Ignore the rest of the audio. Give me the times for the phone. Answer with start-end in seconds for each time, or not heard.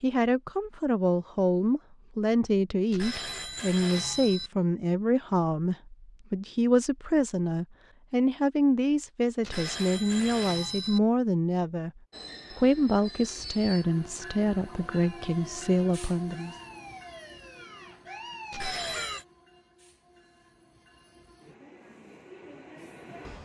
2.9-4.5, 9.4-11.0, 18.5-19.2.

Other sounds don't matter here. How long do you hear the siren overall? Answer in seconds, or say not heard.
5 s.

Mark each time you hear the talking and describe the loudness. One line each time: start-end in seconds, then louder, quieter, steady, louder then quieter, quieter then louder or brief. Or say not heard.
0.0-16.6 steady.